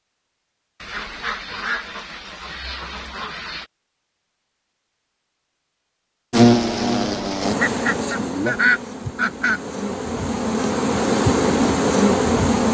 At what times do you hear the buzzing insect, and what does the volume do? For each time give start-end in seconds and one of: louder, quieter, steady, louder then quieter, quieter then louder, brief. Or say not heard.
6.3-12.6 quieter then louder.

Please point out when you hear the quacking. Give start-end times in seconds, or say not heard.
0.8-3.6, 7.6-9.6.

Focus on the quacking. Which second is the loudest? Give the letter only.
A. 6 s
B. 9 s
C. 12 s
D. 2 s
B.